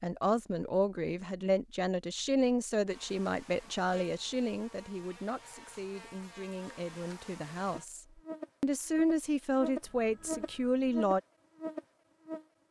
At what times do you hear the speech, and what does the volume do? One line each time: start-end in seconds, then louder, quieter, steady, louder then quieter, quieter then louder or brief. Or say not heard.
0.0-11.2 quieter then louder.